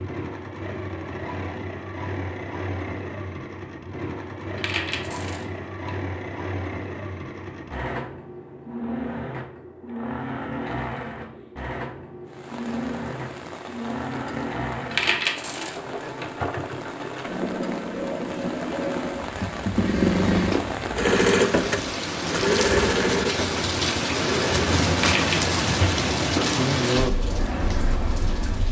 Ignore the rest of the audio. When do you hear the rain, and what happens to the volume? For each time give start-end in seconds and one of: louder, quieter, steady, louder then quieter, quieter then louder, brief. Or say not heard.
12.2-28.6 louder.